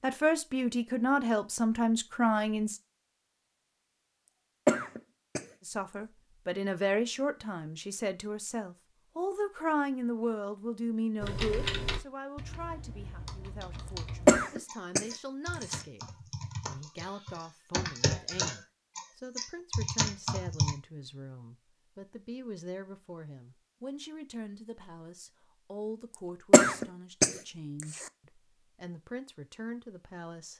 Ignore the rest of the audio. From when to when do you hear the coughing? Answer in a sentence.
You can hear the coughing from 4.7 to 5.5 s, from 14.2 to 15.8 s and from 26.5 to 28.1 s.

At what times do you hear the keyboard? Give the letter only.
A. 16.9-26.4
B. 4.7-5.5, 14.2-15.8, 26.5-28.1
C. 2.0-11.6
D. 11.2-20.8
D.